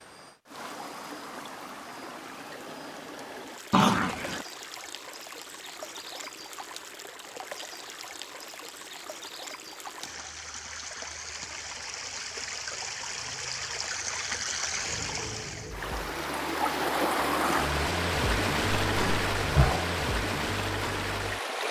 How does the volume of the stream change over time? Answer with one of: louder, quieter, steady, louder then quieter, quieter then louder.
louder.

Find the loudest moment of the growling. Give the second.
4 s.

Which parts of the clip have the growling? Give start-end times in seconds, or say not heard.
3.7-4.5, 18.8-19.9.